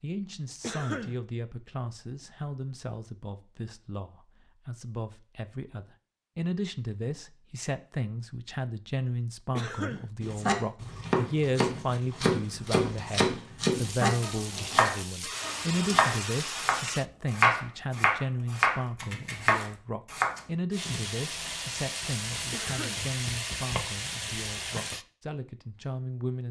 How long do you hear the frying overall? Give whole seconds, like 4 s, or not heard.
8 s.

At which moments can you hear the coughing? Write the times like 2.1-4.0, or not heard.
0.6-1.2, 9.6-10.1, 22.5-23.1.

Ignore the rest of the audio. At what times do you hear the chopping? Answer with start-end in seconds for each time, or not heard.
10.2-20.4.